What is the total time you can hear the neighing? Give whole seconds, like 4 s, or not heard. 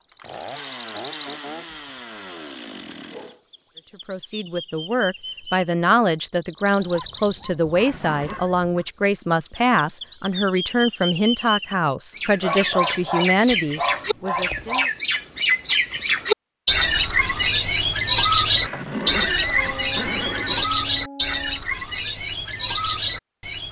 3 s.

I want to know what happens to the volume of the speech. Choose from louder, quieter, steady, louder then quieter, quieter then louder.
steady.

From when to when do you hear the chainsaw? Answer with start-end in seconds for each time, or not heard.
0.1-3.4.